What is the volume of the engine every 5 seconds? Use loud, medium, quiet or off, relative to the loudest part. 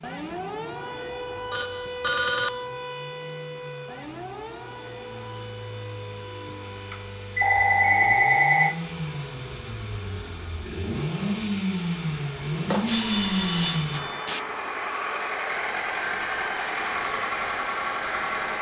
quiet, medium, loud, loud.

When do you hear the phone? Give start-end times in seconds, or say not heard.
1.5-2.5, 6.9-8.8, 12.7-14.4.